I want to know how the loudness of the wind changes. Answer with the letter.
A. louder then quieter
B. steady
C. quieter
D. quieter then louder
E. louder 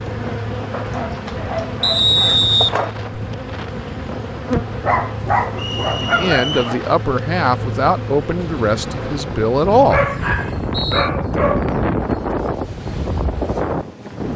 E.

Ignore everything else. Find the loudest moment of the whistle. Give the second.
2 s.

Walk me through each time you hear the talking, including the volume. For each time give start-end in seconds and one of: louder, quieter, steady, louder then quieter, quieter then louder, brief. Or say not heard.
6.0-10.1 steady.